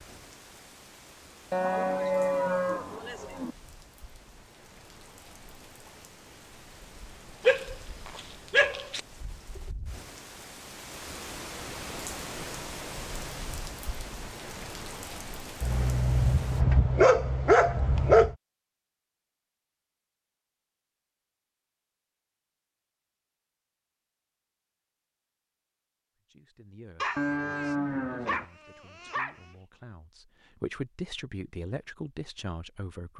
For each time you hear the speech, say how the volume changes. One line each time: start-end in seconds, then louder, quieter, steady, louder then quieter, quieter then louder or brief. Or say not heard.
26.3-33.1 quieter then louder.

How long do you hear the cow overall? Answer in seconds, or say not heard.
3 s.